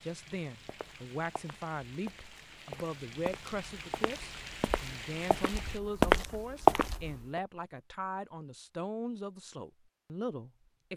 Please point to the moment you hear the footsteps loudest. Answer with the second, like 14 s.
7 s.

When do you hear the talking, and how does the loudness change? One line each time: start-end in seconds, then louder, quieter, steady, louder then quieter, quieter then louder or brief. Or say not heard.
0.0-10.9 steady.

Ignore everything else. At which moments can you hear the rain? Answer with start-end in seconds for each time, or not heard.
0.0-5.8.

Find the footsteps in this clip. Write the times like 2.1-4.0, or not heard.
0.7-7.4.